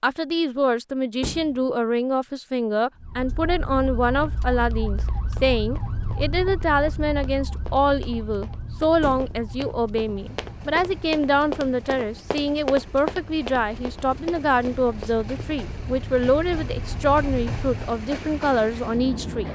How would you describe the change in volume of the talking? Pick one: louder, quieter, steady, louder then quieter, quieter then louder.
steady.